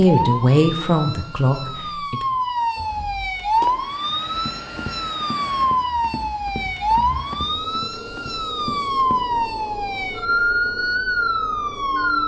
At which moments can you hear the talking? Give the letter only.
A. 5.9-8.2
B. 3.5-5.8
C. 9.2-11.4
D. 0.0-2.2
D.